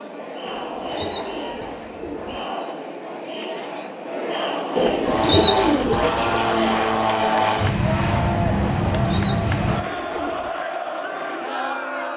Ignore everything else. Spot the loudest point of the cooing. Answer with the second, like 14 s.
5 s.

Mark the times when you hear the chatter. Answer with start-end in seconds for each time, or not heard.
0.0-12.1.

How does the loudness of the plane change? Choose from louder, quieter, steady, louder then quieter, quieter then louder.
steady.